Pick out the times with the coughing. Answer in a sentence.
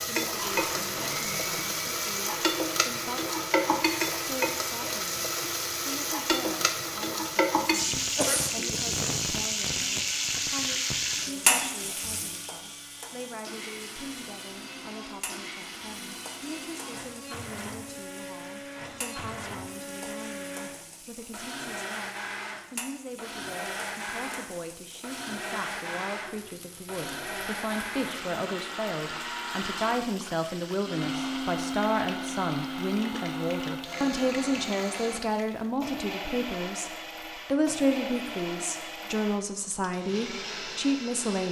You can hear the coughing from 8.2 to 8.9 s.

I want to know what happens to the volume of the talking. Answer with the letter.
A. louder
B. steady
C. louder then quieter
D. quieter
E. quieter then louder
A.